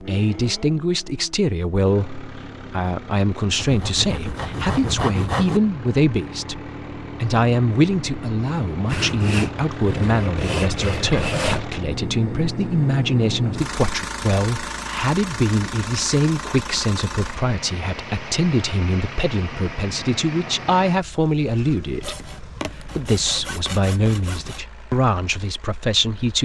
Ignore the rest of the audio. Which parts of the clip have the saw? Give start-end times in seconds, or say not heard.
3.5-5.6, 8.8-11.7, 22.0-24.6.